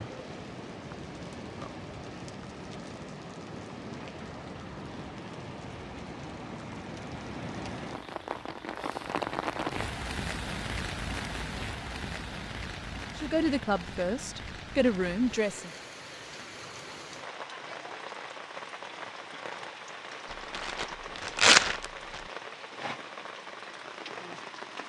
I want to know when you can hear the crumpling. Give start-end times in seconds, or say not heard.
20.3-22.2.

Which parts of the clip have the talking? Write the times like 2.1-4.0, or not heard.
13.2-15.8.